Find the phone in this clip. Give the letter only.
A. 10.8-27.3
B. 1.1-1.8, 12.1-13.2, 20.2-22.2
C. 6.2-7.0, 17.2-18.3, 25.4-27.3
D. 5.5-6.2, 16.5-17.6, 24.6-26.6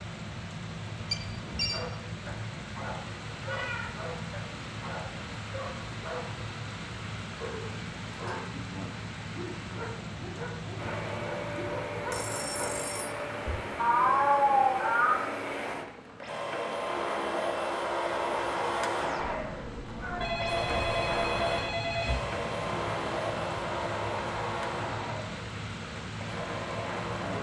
B.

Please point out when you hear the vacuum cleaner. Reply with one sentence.
You can hear the vacuum cleaner from 10.8 to 27.3 s.